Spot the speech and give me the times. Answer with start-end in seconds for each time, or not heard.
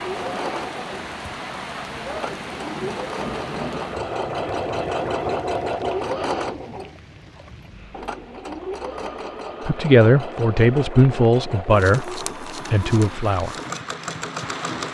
9.7-13.6.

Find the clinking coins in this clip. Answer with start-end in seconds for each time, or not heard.
not heard.